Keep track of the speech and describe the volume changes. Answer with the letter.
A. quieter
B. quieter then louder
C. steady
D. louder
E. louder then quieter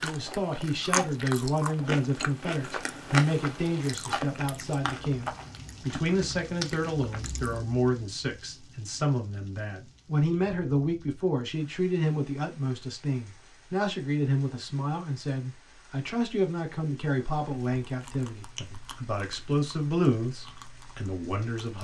C.